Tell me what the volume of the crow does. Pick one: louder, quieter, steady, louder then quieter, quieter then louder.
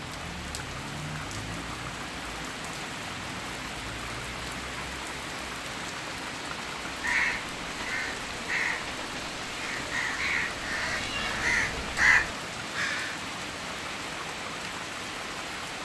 louder.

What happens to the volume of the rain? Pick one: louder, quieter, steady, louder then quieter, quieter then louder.
steady.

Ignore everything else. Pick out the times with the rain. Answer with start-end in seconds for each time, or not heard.
0.0-15.8.